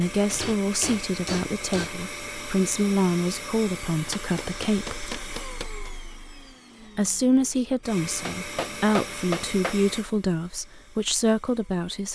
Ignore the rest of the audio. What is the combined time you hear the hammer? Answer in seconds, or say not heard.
5 s.